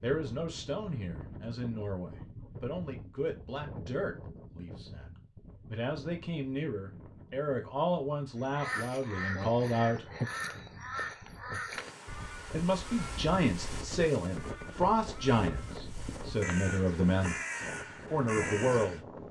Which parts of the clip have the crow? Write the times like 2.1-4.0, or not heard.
8.4-19.1.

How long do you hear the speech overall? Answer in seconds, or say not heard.
16 s.